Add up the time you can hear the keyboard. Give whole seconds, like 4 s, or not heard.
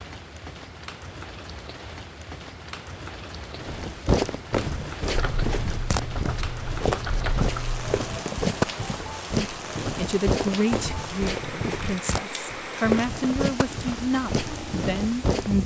3 s.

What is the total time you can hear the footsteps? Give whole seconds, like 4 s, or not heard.
12 s.